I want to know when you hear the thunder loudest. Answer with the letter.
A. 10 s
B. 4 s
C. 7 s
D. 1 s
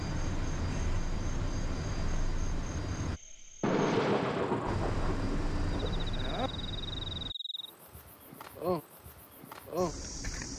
B.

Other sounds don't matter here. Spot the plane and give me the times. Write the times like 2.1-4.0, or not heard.
0.0-3.2, 4.7-7.3.